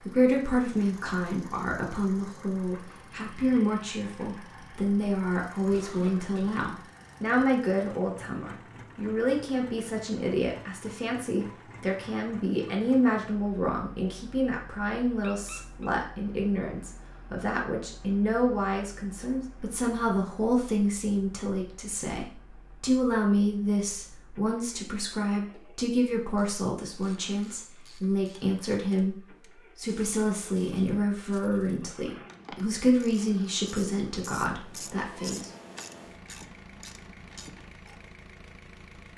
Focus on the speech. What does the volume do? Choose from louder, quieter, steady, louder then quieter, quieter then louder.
steady.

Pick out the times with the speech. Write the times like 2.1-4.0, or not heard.
0.0-35.5.